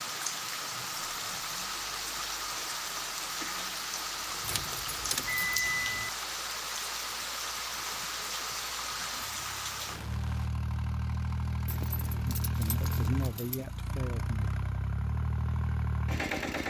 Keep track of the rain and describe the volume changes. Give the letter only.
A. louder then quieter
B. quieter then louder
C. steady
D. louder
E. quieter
C.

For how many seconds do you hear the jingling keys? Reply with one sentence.
You can hear the jingling keys for 4 seconds altogether.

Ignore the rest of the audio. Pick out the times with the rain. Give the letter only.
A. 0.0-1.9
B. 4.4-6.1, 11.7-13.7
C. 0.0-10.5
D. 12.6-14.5
C.